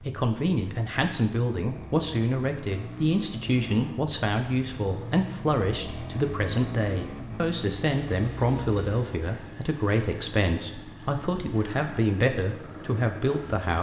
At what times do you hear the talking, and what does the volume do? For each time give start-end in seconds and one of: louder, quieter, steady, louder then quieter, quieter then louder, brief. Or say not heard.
0.0-13.7 steady.